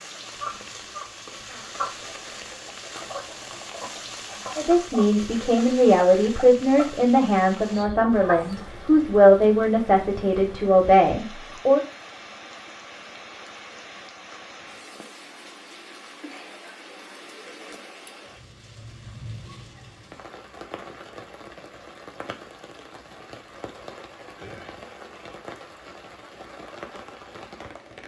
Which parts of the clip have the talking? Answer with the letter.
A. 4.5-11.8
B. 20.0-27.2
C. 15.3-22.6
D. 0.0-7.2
A.